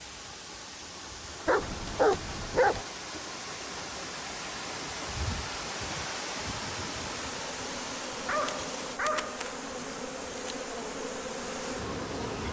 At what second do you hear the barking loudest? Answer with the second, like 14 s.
2 s.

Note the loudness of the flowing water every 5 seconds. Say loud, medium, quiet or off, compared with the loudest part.
loud, loud, medium.